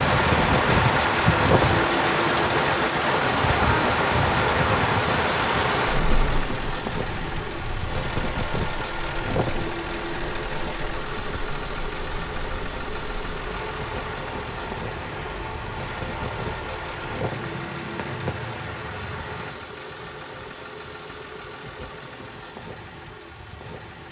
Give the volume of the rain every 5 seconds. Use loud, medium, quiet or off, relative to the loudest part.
loud, medium, quiet, quiet, off.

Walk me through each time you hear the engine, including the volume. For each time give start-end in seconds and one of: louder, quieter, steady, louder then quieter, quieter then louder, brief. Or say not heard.
0.0-24.0 quieter.